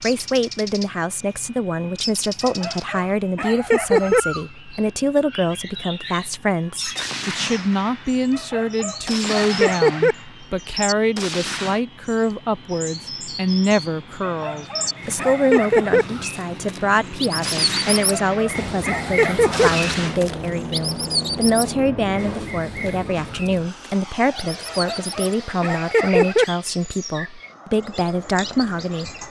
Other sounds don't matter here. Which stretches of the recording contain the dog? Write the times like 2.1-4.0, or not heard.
2.4-4.2, 8.3-10.2, 14.2-16.1, 18.1-19.7, 24.6-26.4.